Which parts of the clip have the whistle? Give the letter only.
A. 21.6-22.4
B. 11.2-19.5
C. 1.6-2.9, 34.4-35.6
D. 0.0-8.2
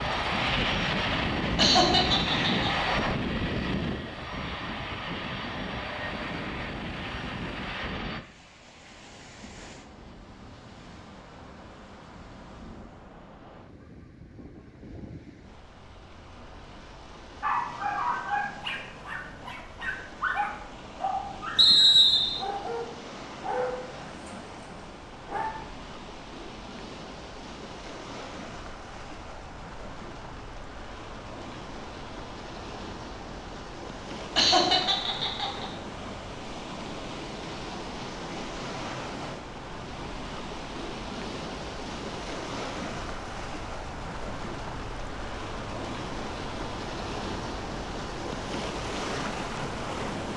A.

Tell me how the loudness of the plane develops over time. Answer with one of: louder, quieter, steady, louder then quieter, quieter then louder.
quieter.